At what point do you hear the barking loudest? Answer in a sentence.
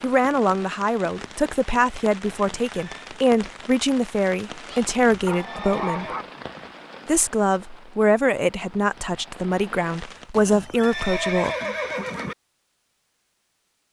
The loudest moment of the barking is at 6 seconds.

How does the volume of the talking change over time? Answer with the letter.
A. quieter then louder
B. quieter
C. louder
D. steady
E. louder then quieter
D.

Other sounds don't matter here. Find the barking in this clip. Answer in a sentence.
You can hear the barking from 4.5 to 6.2 s.